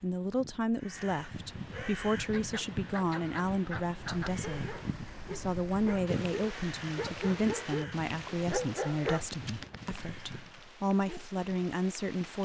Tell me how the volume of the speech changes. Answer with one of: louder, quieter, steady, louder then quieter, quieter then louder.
steady.